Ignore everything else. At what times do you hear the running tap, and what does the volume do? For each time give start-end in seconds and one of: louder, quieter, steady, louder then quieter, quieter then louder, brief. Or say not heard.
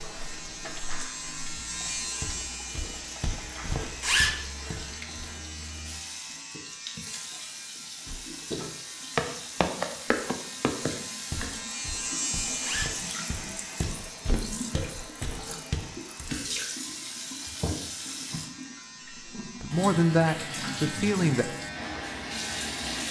0.0-23.0 louder.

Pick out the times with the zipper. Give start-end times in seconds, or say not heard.
3.8-4.3, 12.4-12.9.